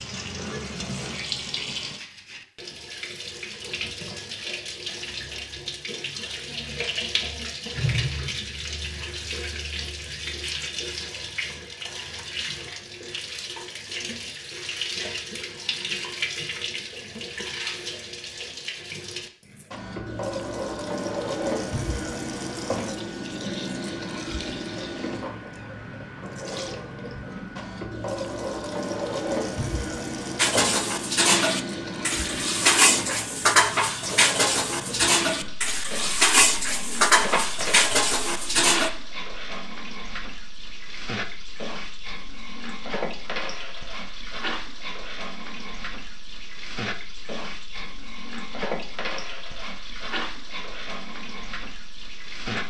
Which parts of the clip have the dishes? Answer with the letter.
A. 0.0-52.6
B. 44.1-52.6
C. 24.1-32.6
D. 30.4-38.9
D.